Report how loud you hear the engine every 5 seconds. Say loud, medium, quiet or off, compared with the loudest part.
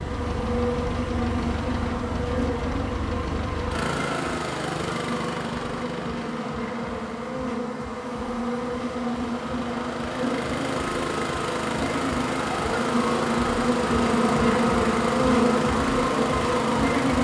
loud, medium, loud, loud.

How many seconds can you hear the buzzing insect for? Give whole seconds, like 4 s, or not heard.
17 s.